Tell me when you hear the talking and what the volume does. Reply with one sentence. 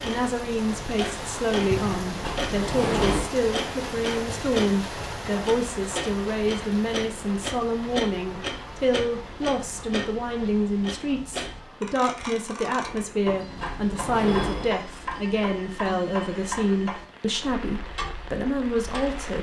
The talking can be heard from 0.0 to 19.3 s, at a steady volume.